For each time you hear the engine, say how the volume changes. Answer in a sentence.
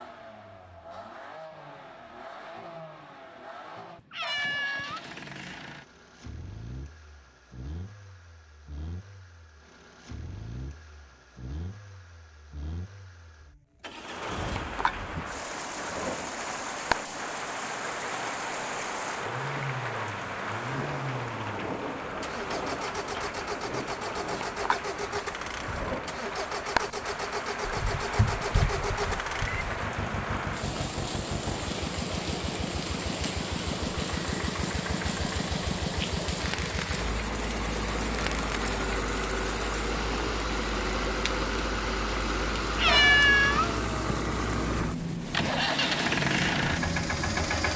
The engine can be heard from 0.0 to 47.7 s, getting louder.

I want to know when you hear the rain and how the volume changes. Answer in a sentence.
You can hear the rain from 13.9 to 47.6 s, at a steady volume.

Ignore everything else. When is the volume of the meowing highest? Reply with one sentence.
The volume of the meowing peaks at 43 seconds.